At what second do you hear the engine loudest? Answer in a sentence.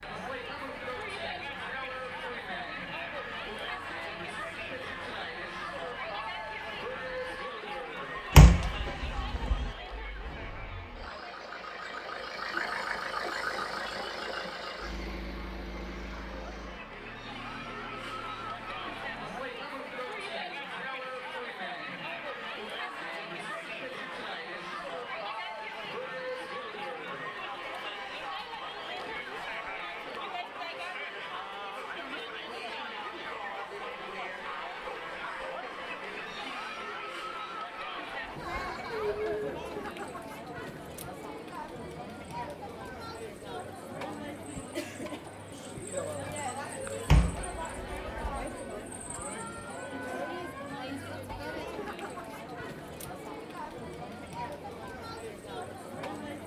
The loudest moment of the engine is at 13 seconds.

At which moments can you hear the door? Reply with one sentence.
The door can be heard from 8.3 to 9.7 s and from 47.0 to 48.5 s.